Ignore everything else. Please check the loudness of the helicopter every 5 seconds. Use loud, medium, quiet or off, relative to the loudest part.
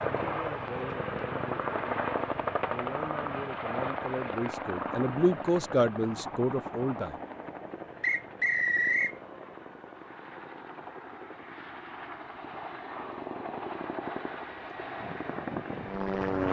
loud, medium, medium, loud.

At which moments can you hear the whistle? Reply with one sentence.
You can hear the whistle from 8.0 to 9.2 s.